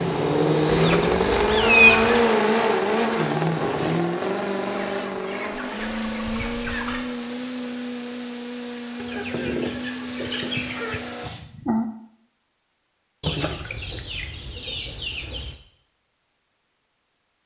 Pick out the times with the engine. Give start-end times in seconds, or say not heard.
0.0-11.3.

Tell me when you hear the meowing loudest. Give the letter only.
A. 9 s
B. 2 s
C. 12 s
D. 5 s
B.